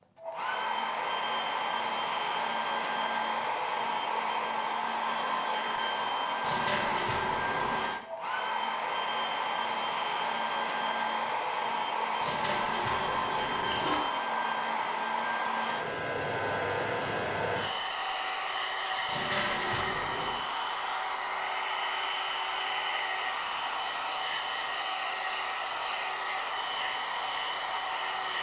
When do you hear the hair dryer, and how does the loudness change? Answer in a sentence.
The hair dryer can be heard from 0.1 to 28.3 s, at a steady volume.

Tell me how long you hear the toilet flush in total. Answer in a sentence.
You can hear the toilet flush for 5 seconds altogether.